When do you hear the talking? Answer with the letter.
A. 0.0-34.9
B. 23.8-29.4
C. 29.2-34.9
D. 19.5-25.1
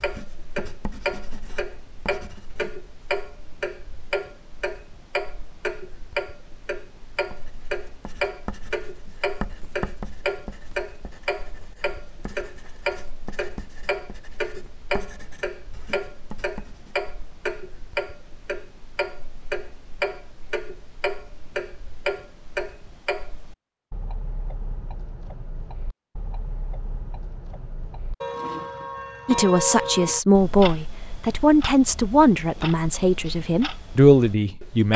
C.